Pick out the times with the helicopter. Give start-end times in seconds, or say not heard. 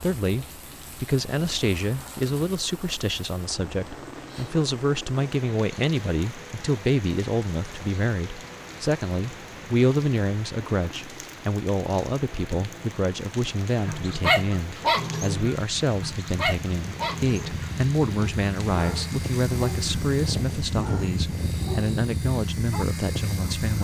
0.2-23.7.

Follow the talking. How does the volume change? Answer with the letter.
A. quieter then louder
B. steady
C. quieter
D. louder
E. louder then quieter
B.